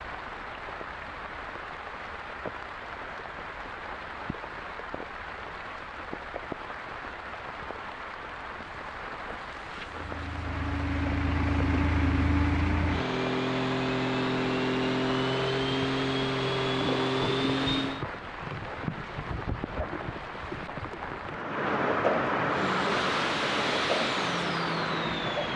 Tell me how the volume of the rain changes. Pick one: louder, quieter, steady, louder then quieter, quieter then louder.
louder.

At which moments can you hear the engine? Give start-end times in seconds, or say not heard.
9.7-18.1, 22.4-25.5.